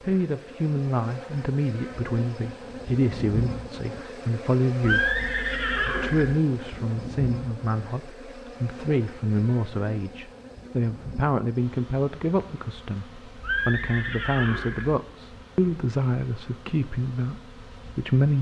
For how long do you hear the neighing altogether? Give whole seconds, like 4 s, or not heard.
3 s.